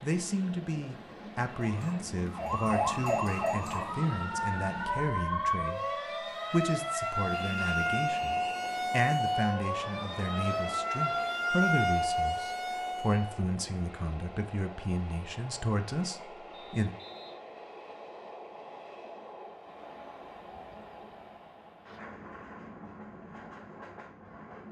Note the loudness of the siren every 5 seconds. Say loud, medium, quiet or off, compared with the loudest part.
loud, loud, loud, off, off.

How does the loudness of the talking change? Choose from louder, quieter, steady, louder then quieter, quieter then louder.
steady.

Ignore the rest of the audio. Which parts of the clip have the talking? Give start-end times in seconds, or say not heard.
0.0-5.8, 6.5-16.9.